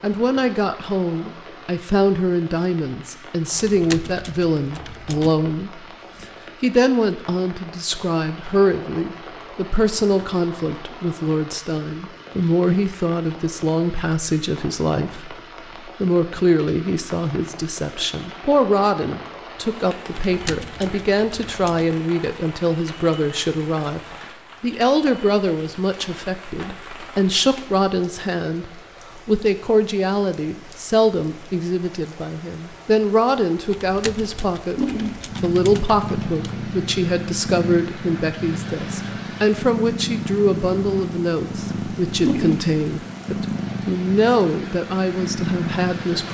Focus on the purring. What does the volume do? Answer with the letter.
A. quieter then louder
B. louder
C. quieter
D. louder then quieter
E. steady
E.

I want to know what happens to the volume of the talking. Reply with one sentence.
The loudness of the talking stays about the same.